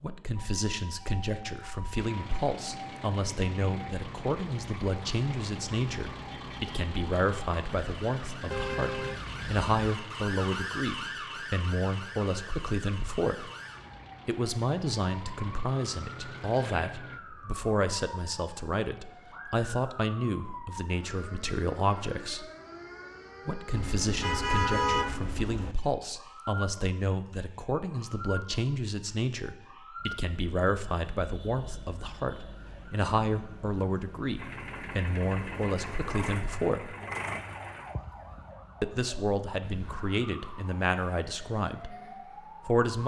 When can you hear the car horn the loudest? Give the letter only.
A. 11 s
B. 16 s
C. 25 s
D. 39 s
C.